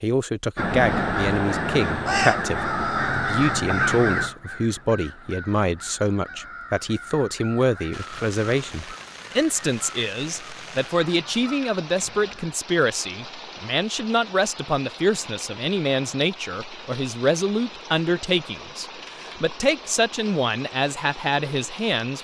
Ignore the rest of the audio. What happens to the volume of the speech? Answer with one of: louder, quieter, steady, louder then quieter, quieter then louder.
steady.